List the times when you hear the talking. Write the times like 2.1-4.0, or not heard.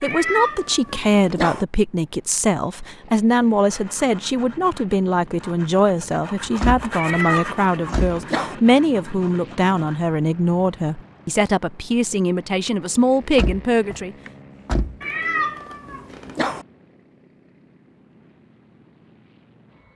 0.0-14.2.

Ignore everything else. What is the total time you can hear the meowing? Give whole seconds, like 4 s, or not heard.
5 s.